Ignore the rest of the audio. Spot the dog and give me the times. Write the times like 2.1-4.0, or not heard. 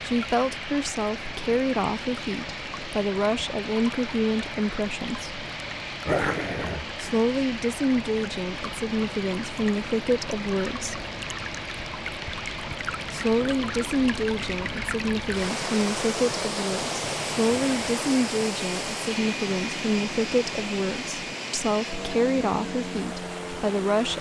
6.0-6.9.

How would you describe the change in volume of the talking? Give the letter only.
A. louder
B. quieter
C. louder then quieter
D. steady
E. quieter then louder
D.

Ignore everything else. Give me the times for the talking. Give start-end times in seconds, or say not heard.
0.0-5.3, 7.0-11.1, 13.1-24.1.